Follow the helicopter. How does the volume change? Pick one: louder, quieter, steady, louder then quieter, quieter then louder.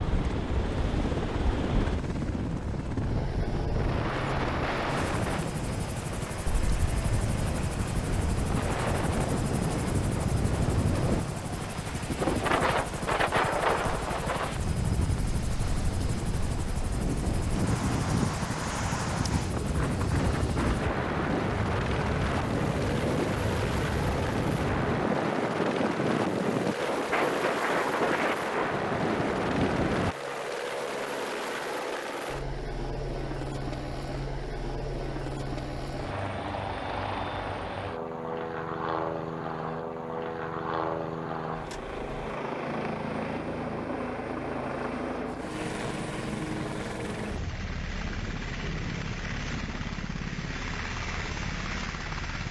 steady.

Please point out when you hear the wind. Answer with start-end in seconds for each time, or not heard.
0.0-30.1.